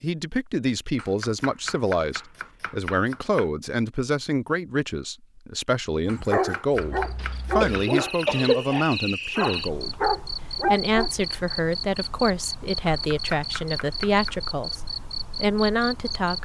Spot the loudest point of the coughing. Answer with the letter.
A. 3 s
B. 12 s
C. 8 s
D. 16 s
C.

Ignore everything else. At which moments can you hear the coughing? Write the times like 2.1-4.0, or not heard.
7.2-8.8.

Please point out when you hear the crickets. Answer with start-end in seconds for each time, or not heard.
6.7-16.4.